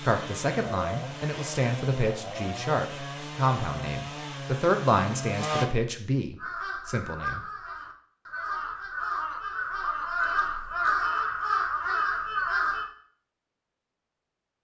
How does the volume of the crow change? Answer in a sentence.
The volume of the crow goes up.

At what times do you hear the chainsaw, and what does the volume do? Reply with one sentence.
The chainsaw can be heard from 0.0 to 5.7 s, at a steady volume.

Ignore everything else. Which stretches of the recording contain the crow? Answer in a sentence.
The crow can be heard from 6.3 to 12.9 s.